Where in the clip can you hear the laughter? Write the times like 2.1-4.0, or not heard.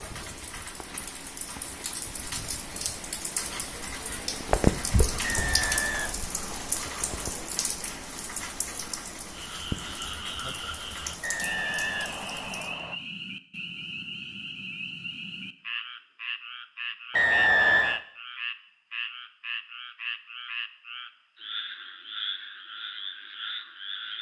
not heard.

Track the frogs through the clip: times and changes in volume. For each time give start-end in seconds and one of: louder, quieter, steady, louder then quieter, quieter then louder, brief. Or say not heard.
9.3-24.1 steady.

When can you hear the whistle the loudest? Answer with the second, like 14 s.
18 s.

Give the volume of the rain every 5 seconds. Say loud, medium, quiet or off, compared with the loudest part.
loud, loud, medium, off, off.